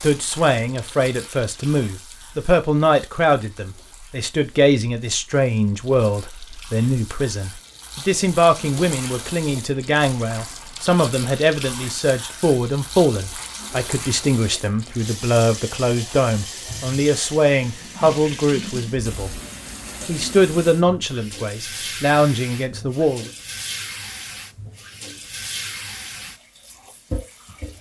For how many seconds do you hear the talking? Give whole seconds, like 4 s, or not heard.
23 s.